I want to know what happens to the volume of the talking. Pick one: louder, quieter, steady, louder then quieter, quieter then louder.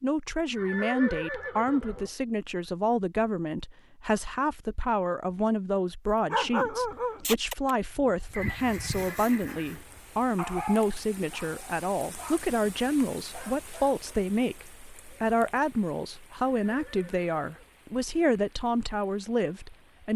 steady.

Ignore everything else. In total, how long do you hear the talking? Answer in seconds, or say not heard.
20 s.